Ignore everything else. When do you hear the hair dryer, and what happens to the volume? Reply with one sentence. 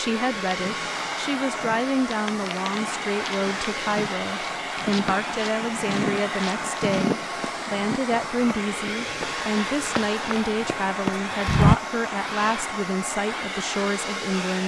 You can hear the hair dryer from 0.0 to 14.6 s, at a steady volume.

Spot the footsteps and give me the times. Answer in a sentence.
You can hear the footsteps from 0.5 to 11.8 s.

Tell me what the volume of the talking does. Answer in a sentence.
The volume of the talking stays about the same.